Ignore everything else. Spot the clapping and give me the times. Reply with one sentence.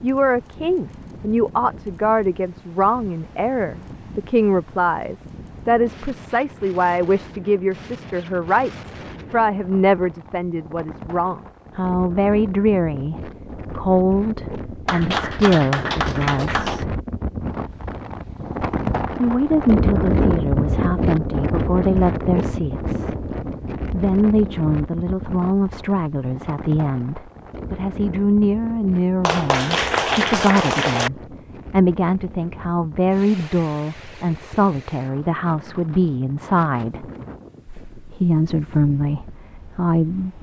You can hear the clapping from 14.8 to 16.9 s and from 29.2 to 31.1 s.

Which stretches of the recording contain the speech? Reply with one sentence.
The speech can be heard from 0.0 to 16.7 s, from 19.1 to 23.2 s, from 23.9 to 37.0 s and from 37.9 to 40.3 s.